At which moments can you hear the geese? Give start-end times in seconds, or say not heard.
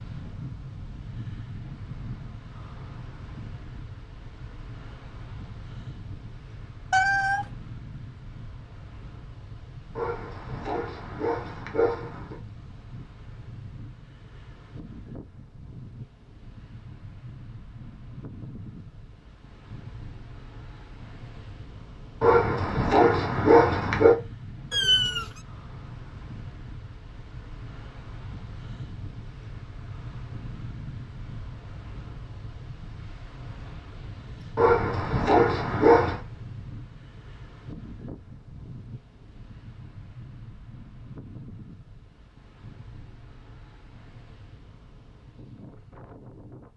not heard.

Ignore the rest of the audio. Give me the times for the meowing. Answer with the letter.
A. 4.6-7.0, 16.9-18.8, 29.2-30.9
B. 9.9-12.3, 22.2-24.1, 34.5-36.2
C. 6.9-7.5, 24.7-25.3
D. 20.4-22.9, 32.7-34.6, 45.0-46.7
C.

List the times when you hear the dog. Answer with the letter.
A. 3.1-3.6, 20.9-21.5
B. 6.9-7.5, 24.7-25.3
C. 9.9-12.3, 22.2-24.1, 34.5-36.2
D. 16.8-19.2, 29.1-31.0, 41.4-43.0
C.